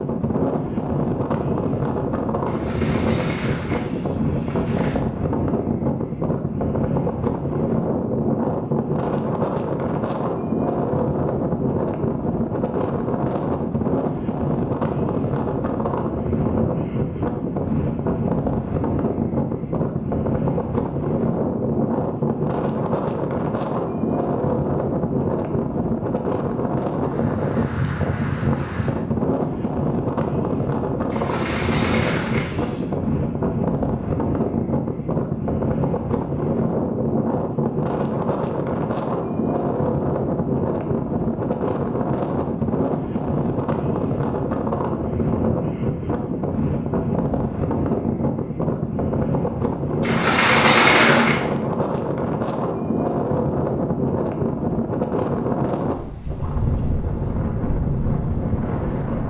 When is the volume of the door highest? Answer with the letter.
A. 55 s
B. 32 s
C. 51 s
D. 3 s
C.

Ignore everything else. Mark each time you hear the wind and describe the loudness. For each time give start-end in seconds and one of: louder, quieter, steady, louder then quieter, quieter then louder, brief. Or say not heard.
0.0-59.2 steady.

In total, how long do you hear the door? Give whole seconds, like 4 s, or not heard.
6 s.